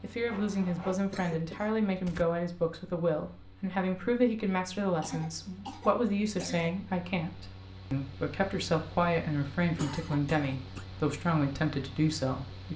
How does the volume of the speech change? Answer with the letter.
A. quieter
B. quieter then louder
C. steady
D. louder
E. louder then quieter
C.